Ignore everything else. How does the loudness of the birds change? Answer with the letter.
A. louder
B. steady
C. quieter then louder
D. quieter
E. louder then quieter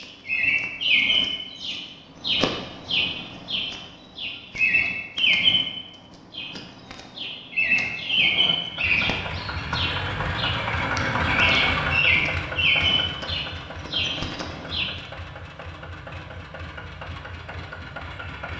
B.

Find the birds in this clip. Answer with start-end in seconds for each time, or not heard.
0.0-15.0.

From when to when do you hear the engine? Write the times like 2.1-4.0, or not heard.
8.6-18.5.